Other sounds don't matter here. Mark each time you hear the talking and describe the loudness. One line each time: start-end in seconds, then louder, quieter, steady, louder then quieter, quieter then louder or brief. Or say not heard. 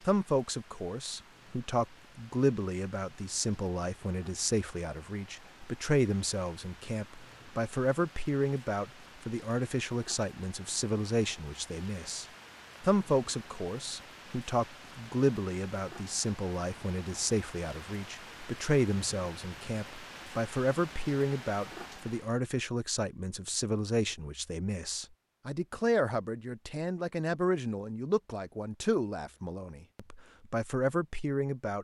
0.1-31.7 steady.